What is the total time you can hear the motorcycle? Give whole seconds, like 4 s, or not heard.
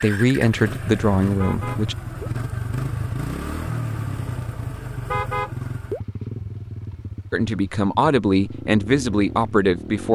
10 s.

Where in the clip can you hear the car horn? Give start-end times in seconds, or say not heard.
1.4-2.3, 5.0-6.0.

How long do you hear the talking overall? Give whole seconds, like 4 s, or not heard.
5 s.